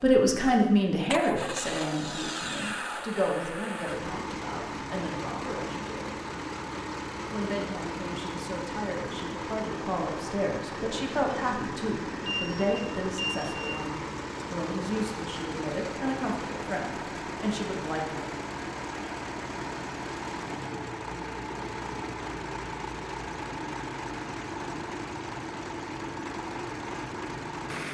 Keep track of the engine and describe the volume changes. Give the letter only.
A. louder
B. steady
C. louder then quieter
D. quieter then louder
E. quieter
B.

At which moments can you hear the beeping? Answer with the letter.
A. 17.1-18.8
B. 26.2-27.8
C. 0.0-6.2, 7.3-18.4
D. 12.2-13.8
D.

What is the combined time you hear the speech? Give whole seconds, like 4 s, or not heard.
17 s.